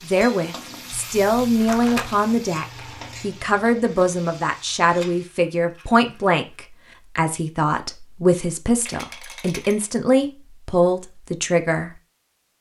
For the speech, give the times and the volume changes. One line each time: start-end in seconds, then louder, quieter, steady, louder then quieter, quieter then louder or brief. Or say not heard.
0.0-11.9 steady.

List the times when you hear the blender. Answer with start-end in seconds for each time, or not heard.
not heard.